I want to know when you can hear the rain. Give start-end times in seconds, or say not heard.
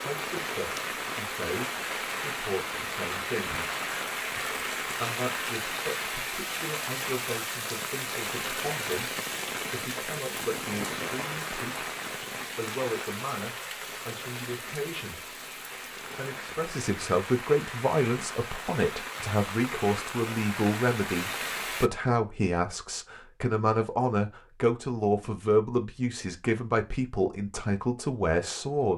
0.0-21.9.